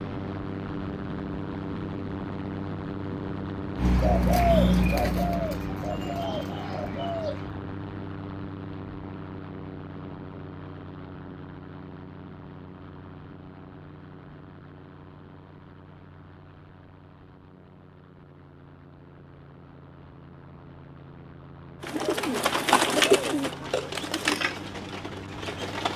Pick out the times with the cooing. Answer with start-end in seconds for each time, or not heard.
3.8-7.5, 21.8-25.9.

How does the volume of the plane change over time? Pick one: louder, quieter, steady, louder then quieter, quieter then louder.
quieter then louder.